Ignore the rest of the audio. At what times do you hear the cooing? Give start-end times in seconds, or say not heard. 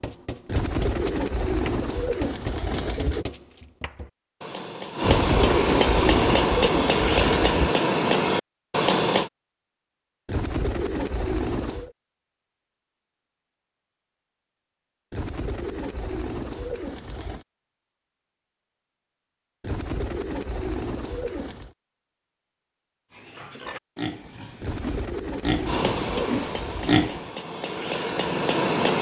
0.5-3.2, 5.0-7.8, 10.2-11.9, 15.1-17.4, 19.6-21.7, 24.6-27.1.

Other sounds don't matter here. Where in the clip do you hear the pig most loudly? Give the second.
27 s.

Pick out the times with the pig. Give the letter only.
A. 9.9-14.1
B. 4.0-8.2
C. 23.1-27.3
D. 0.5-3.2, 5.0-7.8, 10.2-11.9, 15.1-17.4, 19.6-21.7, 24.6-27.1
C.